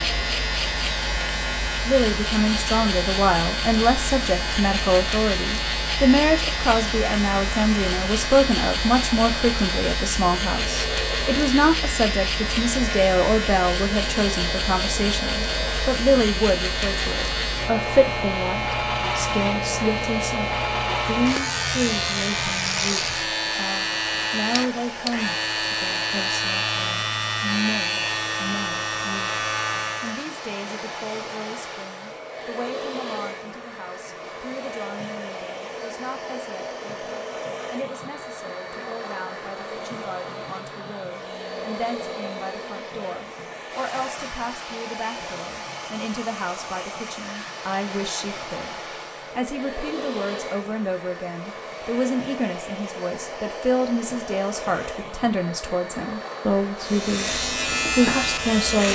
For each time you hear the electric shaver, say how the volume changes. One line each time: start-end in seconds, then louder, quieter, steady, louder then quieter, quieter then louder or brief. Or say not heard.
0.0-30.3 steady
56.8-58.9 brief.